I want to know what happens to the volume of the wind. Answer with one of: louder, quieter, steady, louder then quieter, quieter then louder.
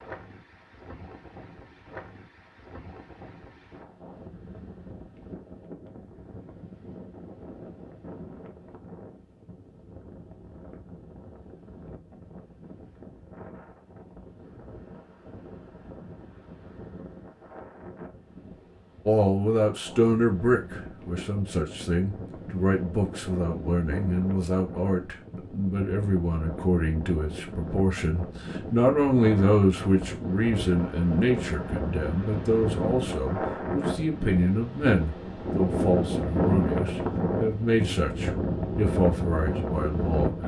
louder.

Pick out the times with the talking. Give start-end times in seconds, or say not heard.
19.1-40.4.